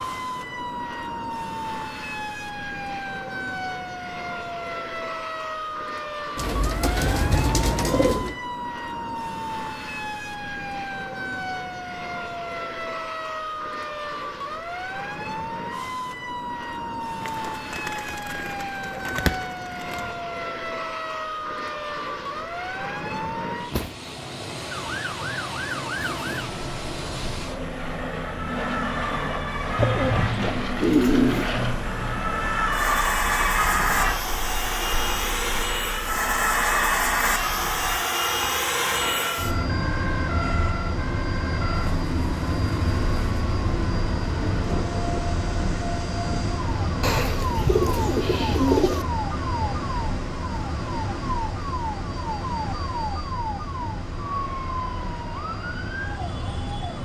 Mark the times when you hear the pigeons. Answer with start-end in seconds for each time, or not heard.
6.3-8.3, 17.2-20.1, 29.8-31.5, 47.0-49.0.